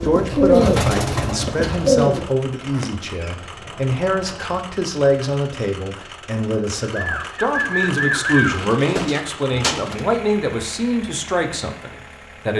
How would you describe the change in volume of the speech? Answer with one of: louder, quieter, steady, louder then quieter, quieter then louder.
steady.